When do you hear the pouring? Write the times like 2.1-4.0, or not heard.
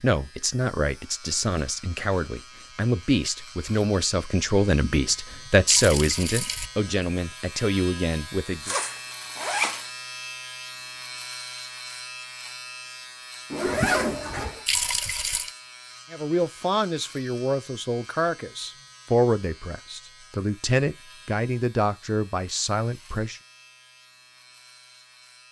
4.9-6.7, 13.7-15.5.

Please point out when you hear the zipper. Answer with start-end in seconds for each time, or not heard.
8.6-9.8, 13.5-14.7.